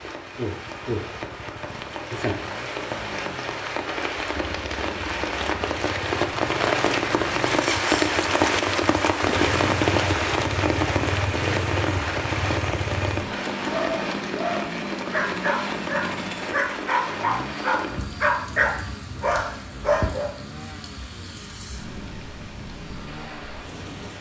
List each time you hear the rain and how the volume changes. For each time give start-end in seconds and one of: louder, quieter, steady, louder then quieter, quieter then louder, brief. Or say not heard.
0.0-24.1 louder then quieter.